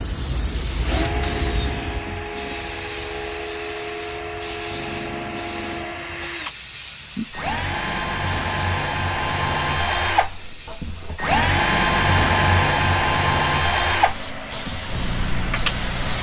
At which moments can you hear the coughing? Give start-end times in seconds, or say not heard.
not heard.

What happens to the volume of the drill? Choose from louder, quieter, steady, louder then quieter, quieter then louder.
louder.